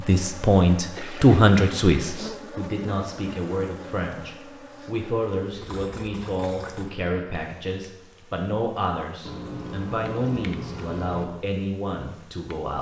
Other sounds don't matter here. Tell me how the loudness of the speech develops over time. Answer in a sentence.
The volume of the speech goes down.